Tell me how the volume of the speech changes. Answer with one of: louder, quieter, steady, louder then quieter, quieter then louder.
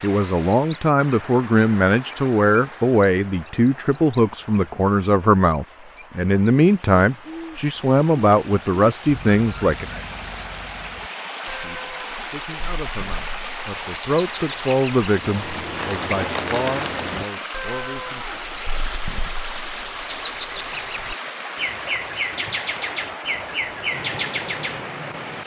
quieter.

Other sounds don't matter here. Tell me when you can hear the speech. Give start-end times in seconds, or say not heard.
0.0-10.0, 11.4-18.4.